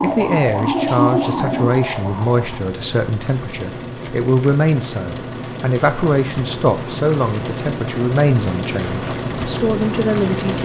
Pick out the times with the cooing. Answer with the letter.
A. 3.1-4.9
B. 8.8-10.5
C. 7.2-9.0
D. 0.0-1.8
D.